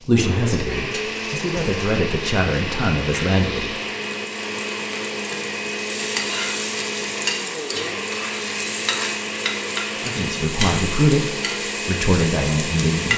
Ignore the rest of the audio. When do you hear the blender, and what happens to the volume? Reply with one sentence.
You can hear the blender from 0.1 to 13.1 s, at a steady volume.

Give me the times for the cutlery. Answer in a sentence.
The cutlery can't be heard in this clip.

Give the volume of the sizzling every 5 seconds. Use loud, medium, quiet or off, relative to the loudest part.
medium, loud, loud.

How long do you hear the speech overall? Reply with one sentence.
The speech can be heard for 7 seconds in total.